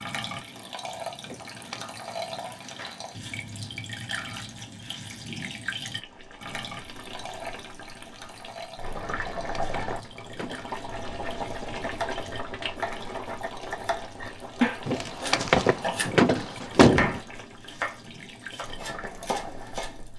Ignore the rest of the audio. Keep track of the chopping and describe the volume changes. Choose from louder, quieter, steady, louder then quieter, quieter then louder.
louder then quieter.